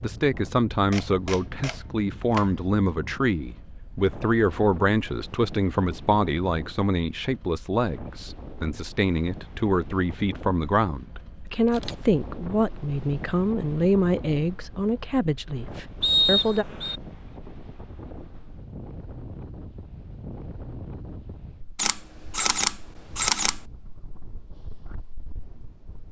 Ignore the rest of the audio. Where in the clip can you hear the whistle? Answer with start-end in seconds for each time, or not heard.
16.0-17.0.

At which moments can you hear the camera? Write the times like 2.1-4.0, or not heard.
0.9-2.5, 11.7-12.1, 21.8-23.6.